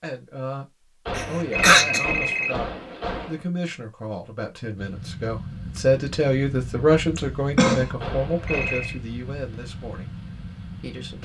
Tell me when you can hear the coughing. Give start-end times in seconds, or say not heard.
1.1-2.0, 7.2-7.8.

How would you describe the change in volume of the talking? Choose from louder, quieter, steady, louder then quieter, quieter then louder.
louder then quieter.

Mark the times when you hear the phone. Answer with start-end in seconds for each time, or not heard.
1.1-3.4, 8.0-9.0.